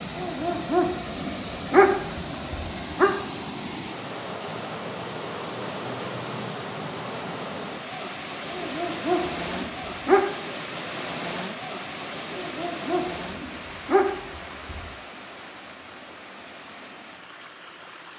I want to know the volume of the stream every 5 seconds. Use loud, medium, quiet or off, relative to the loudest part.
loud, loud, loud, medium.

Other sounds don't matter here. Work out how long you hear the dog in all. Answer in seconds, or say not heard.
7 s.